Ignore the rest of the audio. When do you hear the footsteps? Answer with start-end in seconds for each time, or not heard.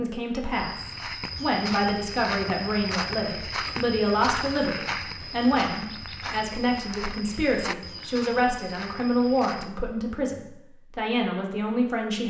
0.5-9.7.